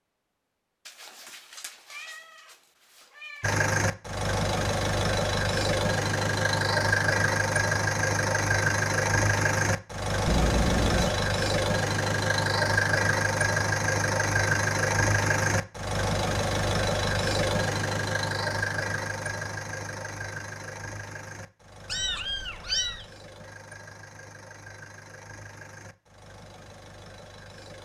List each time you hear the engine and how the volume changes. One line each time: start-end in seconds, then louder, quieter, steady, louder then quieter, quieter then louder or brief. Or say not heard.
3.4-27.7 quieter.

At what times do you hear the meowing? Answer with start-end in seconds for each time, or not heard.
0.8-2.5, 3.1-3.6, 10.2-11.2, 21.9-23.1.